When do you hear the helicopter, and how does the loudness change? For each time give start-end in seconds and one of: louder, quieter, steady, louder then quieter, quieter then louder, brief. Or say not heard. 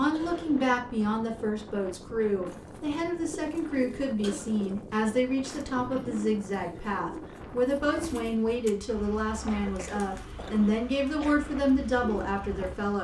not heard.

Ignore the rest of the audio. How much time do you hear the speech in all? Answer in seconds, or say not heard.
13 s.